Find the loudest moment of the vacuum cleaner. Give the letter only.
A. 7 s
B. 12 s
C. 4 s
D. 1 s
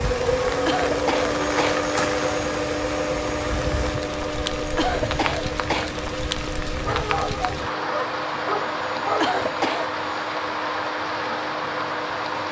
D.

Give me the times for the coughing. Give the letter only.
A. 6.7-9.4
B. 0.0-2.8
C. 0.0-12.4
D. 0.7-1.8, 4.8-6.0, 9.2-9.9
D.